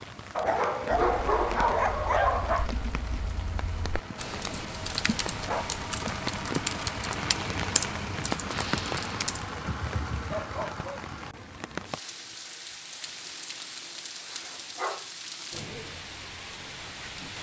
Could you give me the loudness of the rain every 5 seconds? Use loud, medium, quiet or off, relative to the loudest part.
medium, loud, medium, medium.